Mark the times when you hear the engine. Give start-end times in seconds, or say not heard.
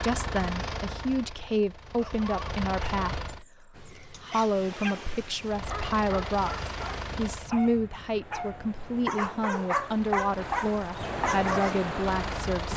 0.0-3.5, 5.4-7.5, 9.8-12.7.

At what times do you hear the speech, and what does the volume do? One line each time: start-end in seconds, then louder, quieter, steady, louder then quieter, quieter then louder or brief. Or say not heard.
0.0-12.7 steady.